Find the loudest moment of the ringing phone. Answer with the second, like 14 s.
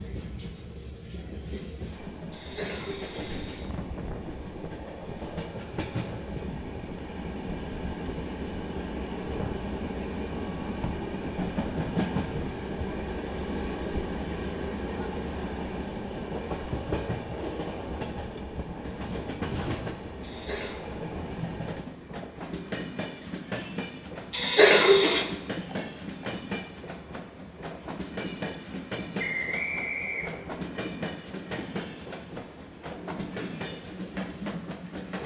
25 s.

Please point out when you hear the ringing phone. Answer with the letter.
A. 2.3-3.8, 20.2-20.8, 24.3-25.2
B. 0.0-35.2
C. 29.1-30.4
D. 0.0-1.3
A.